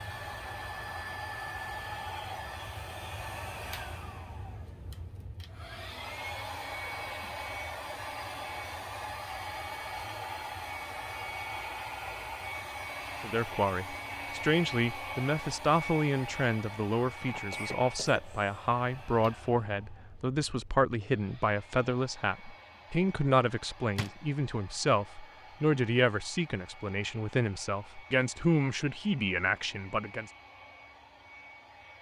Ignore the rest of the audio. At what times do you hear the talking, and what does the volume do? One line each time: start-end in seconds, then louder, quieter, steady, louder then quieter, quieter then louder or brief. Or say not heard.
13.2-30.3 steady.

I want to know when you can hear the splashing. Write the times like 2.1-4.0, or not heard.
not heard.